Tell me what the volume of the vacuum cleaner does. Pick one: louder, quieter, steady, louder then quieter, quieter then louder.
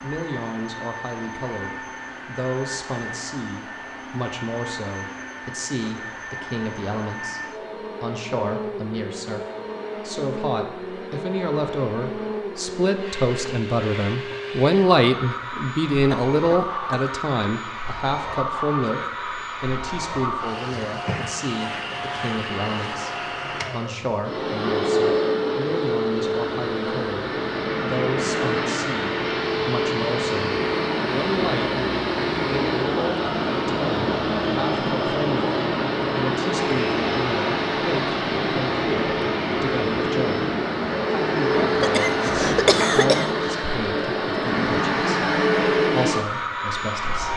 louder.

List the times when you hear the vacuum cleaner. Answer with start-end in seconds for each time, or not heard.
0.0-47.3.